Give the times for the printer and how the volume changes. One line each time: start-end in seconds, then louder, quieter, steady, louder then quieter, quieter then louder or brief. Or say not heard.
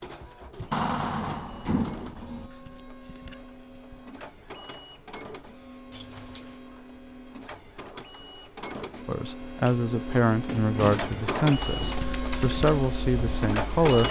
0.0-14.0 louder.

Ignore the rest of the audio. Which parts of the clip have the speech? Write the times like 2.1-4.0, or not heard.
9.1-14.0.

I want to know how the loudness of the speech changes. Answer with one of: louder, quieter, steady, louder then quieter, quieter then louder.
steady.